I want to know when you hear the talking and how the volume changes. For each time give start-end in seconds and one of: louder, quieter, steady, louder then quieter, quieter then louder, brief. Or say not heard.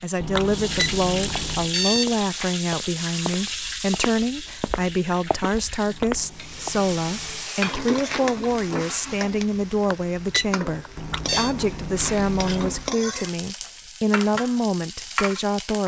0.0-15.8 steady.